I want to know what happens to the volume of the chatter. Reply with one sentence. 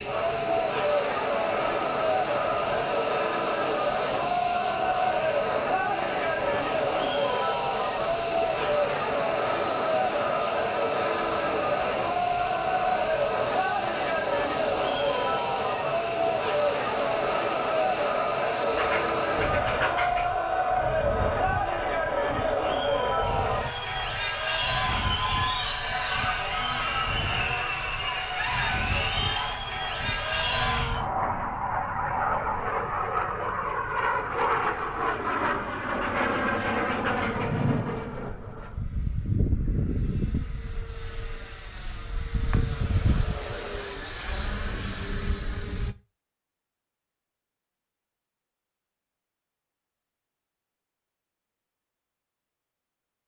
The loudness of the chatter stays about the same.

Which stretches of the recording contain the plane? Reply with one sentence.
You can hear the plane from 0.0 to 46.0 s.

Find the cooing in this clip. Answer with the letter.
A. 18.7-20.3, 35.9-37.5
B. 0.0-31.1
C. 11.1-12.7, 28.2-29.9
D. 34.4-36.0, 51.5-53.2
A.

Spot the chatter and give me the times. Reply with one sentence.
You can hear the chatter from 0.0 to 31.1 s.